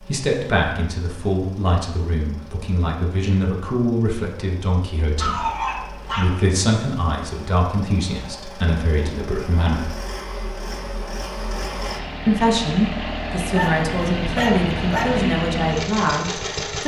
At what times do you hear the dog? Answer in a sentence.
The dog can be heard from 5.2 to 6.3 s and from 13.5 to 15.3 s.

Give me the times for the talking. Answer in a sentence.
The talking can be heard from 0.0 to 9.9 s and from 12.2 to 16.8 s.